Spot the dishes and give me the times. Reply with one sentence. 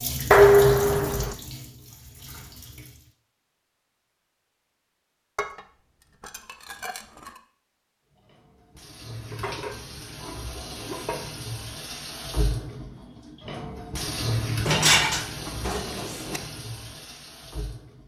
You can hear the dishes from 0.3 to 1.4 s, from 5.3 to 7.4 s, from 9.3 to 11.3 s and from 14.7 to 16.4 s.